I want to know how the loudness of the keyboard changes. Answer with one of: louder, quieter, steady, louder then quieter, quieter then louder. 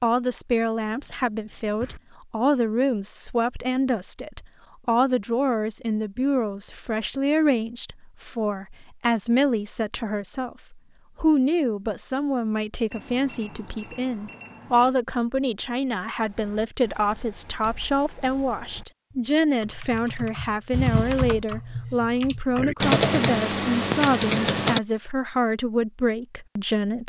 louder.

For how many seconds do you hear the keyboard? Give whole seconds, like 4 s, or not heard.
9 s.